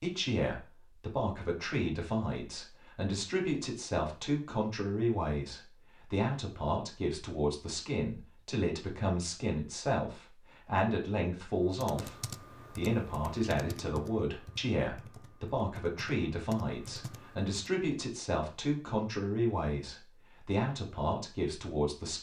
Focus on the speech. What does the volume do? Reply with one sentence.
The loudness of the speech stays about the same.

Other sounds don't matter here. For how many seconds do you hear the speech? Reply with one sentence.
You can hear the speech for 22 seconds altogether.